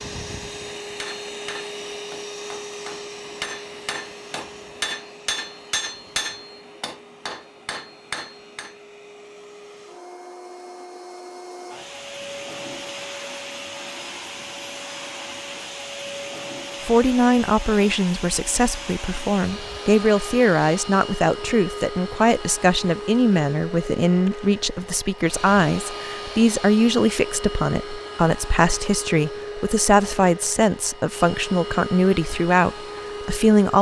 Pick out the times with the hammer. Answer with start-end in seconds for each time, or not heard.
1.0-8.8.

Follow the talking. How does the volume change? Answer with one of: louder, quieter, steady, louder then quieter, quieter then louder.
steady.